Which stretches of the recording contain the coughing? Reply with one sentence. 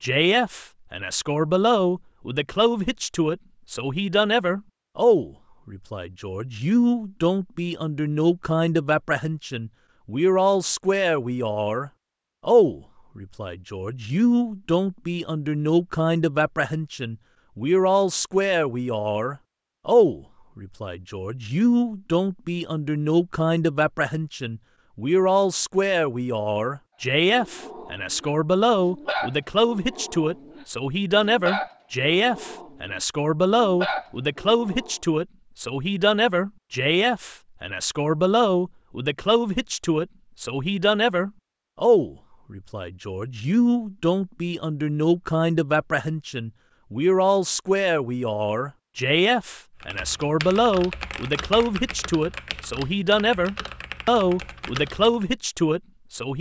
You can't hear the coughing here.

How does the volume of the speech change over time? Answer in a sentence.
The volume of the speech stays about the same.